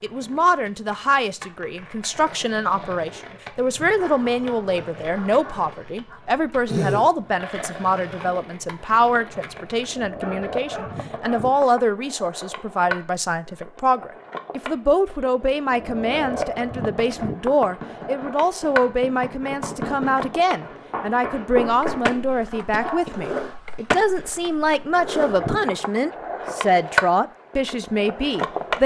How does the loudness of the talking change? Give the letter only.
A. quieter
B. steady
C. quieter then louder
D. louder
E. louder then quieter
B.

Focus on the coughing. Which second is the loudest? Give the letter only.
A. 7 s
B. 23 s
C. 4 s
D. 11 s
A.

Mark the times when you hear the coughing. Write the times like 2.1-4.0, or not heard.
6.7-7.2, 22.7-23.1.